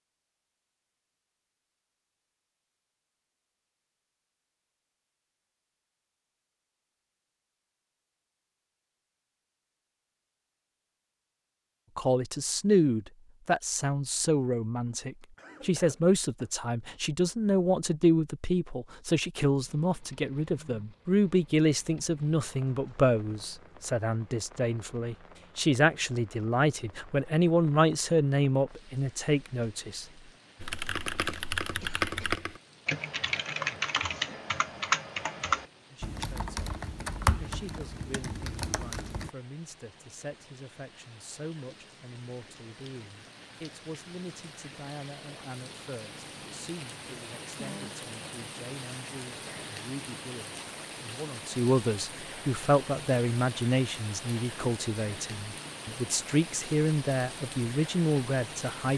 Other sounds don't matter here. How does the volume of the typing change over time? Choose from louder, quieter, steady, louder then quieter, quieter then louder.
quieter.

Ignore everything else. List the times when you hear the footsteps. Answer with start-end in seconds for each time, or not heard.
not heard.